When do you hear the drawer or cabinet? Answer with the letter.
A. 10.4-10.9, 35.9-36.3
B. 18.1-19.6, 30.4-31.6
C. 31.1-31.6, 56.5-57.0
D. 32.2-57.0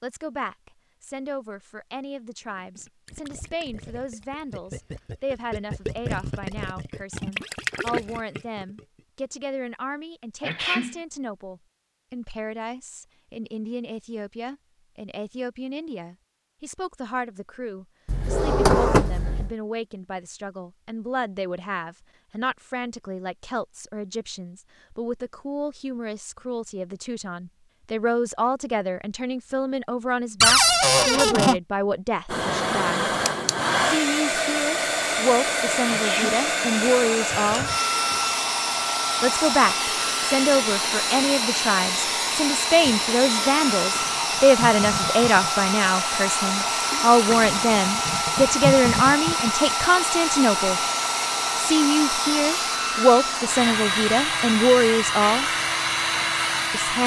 B.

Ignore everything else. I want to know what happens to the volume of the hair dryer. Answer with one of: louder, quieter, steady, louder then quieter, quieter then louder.
steady.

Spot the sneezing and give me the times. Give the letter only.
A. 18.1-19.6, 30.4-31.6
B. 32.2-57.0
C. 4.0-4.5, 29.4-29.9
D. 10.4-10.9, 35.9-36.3
D.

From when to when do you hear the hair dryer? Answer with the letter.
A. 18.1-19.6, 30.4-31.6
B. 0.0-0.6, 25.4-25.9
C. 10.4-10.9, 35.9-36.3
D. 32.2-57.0
D.